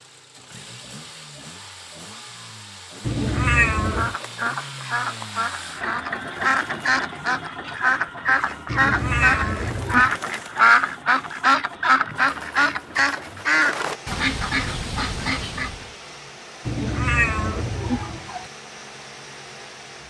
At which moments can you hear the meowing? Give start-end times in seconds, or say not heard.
3.0-4.2, 8.7-10.2, 16.6-18.5.